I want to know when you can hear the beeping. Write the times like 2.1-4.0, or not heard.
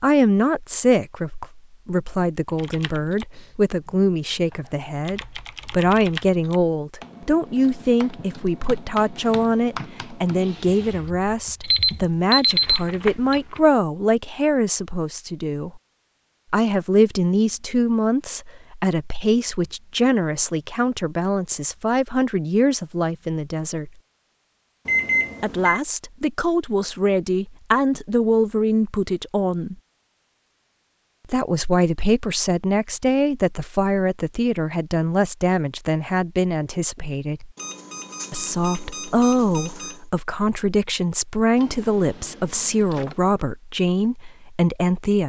11.6-13.3, 24.9-25.8, 37.5-40.0.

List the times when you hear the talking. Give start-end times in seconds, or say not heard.
0.0-15.8, 16.5-23.9, 25.4-29.8, 31.3-37.5, 38.3-45.2.